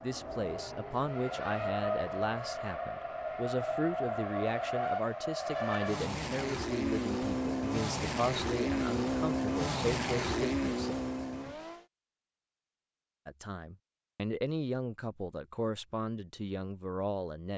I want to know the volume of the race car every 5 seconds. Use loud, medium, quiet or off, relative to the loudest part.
loud, loud, loud, off.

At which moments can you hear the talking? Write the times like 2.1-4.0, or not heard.
0.0-10.9, 13.2-17.5.